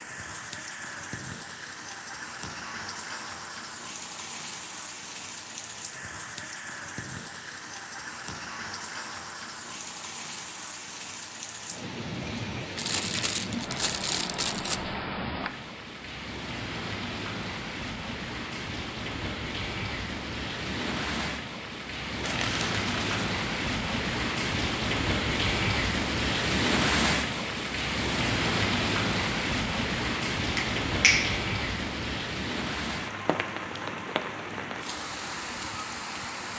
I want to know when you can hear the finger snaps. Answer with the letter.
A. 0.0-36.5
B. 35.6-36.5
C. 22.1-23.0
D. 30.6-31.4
D.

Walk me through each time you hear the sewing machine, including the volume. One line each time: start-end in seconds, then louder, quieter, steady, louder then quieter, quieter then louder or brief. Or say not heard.
not heard.